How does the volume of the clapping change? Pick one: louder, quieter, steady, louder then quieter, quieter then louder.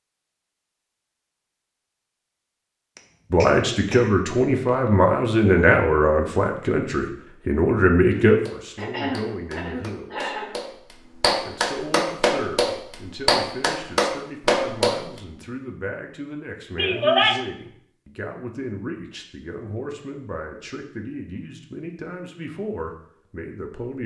louder.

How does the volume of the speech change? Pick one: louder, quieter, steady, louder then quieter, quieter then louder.
quieter.